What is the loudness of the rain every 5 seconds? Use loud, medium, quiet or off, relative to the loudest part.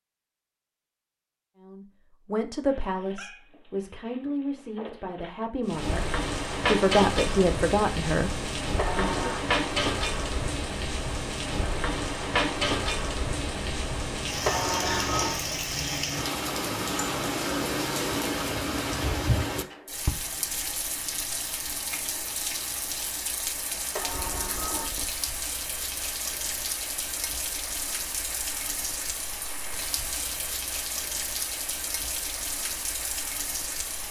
off, loud, loud, loud, medium, medium, medium.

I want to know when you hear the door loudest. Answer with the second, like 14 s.
15 s.